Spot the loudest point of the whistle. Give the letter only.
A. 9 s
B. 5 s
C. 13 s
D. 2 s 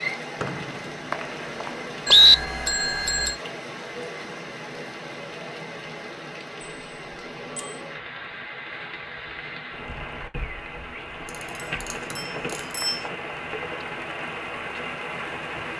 D.